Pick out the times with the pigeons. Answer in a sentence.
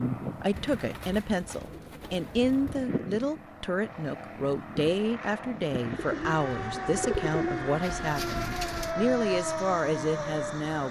You can hear the pigeons from 0.5 to 2.9 s and from 6.0 to 8.9 s.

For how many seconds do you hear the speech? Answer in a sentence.
The speech can be heard for 11 seconds in total.